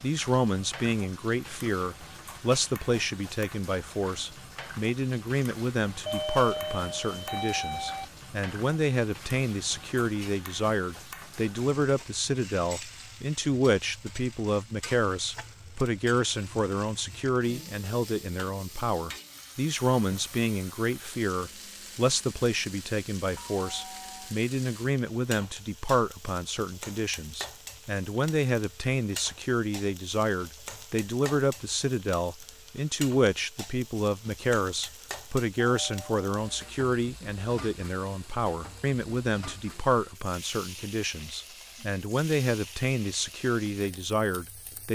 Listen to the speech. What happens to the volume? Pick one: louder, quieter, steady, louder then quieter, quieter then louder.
steady.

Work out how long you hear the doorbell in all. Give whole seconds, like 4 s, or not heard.
4 s.